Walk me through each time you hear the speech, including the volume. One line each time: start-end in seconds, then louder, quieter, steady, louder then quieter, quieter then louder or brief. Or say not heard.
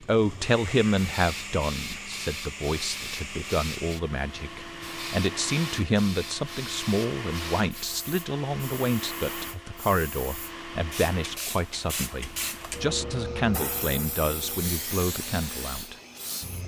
0.0-15.9 steady.